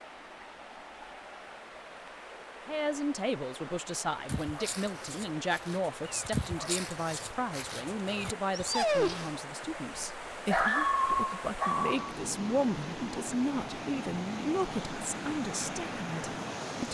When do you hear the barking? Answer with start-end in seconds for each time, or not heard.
4.2-9.3, 10.0-12.2.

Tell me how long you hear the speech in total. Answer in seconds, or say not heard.
14 s.